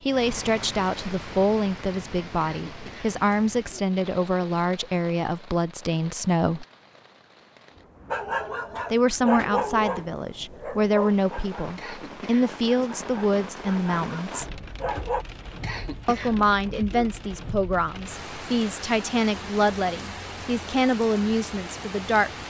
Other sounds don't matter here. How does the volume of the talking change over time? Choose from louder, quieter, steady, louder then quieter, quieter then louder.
steady.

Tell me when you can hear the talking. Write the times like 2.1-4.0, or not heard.
0.0-6.7, 8.9-14.5, 16.1-22.3.